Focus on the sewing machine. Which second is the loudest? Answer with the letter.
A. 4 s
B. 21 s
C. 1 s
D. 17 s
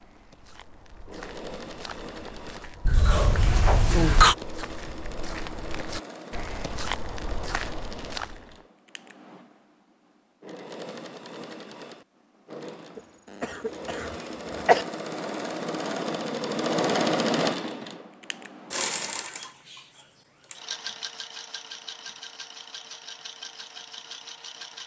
D.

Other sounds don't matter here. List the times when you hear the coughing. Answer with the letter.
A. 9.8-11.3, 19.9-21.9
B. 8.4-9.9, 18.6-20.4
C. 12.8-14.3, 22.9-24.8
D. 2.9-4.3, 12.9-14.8
D.